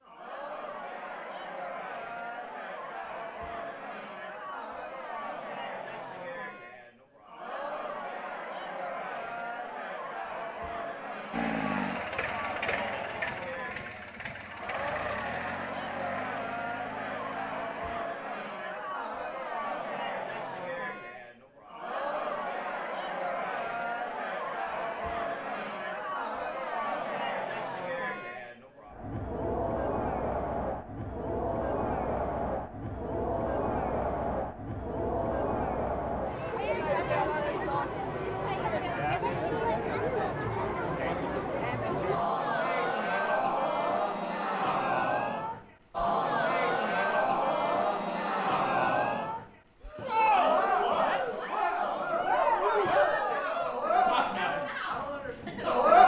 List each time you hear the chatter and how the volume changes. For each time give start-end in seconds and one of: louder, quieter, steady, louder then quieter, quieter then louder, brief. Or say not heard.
0.0-56.0 louder.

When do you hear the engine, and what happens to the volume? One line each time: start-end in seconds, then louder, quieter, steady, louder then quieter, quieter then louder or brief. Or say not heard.
11.3-18.1 quieter.